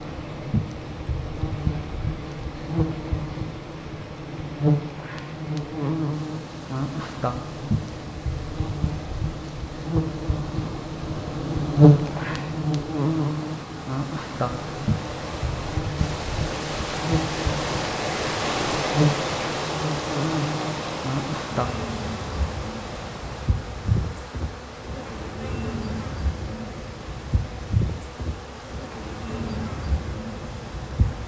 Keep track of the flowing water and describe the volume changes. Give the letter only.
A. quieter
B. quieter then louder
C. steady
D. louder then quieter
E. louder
D.